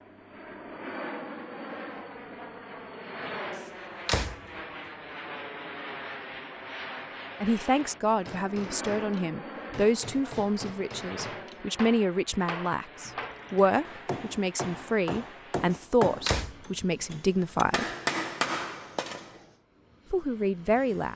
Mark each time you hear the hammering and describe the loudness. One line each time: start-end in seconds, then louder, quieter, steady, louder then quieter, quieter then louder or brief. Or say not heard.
8.2-19.4 louder.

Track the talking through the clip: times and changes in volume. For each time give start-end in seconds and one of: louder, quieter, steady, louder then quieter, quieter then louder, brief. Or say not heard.
7.4-17.9 steady
20.1-21.1 brief.